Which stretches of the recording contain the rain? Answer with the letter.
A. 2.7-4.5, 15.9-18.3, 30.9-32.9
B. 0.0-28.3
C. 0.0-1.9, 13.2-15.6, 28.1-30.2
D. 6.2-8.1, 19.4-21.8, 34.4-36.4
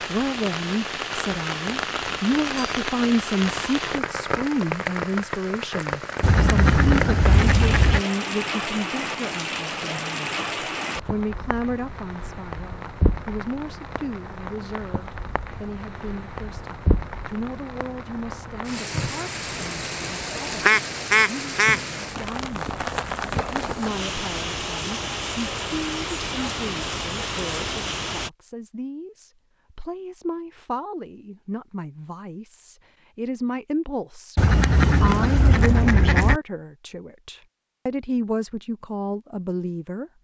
B.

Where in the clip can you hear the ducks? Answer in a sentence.
You can hear the ducks from 6.2 to 8.1 s, from 19.4 to 21.8 s and from 34.4 to 36.4 s.